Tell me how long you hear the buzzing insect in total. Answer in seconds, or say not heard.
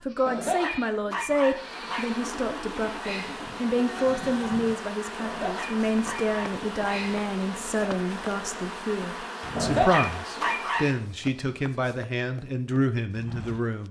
10 s.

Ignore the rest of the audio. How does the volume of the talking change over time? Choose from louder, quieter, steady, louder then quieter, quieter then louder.
steady.